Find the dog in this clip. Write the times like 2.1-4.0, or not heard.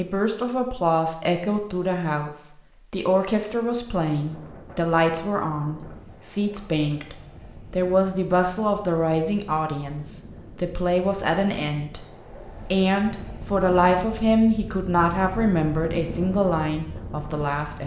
not heard.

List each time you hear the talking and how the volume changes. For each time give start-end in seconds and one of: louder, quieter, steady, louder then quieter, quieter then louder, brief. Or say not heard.
0.0-17.8 steady.